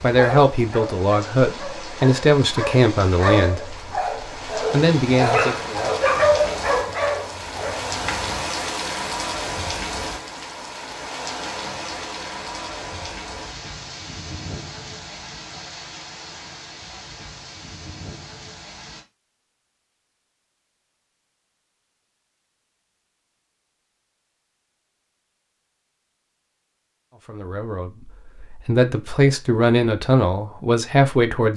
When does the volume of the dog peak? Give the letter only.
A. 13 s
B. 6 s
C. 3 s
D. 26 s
B.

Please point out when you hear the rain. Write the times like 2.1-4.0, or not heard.
0.0-19.1.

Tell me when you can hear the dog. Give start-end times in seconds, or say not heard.
0.0-8.4.